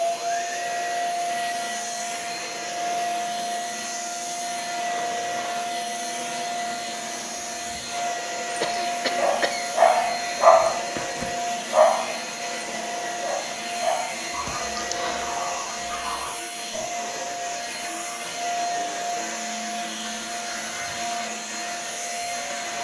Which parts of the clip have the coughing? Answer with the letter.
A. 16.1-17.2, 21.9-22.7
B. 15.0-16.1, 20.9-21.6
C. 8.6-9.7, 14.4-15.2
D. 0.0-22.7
C.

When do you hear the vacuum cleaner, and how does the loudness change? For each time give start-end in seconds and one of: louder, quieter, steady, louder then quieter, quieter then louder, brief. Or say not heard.
0.0-22.7 steady.